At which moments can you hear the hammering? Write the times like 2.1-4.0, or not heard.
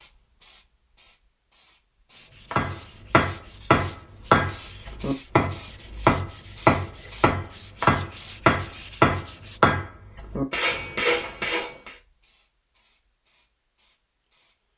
2.5-11.9.